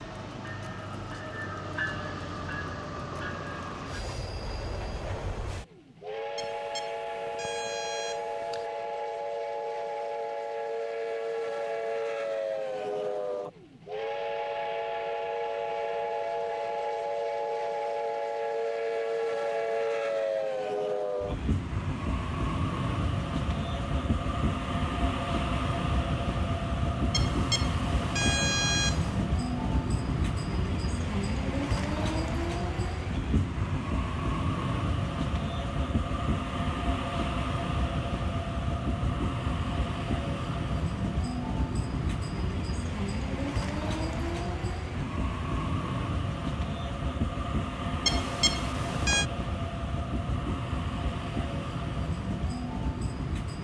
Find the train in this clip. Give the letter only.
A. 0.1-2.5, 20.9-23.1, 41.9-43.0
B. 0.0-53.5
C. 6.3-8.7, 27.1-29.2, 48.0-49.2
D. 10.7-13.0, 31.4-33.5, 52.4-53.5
B.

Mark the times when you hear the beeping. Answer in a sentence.
The beeping can be heard from 6.3 to 8.7 s, from 27.1 to 29.2 s and from 48.0 to 49.2 s.